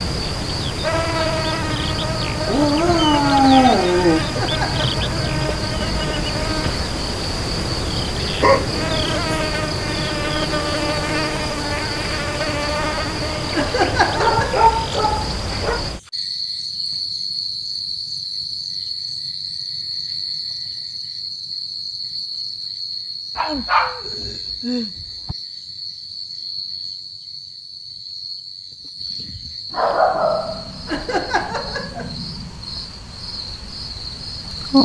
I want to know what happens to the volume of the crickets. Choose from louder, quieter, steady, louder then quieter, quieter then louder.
quieter.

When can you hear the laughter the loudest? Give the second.
14 s.